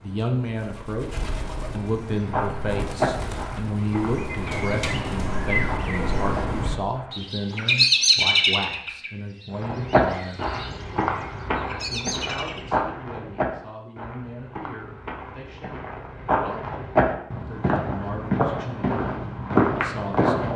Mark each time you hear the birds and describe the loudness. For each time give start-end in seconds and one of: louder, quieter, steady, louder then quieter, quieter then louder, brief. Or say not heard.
0.0-12.7 louder then quieter.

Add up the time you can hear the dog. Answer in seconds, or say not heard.
not heard.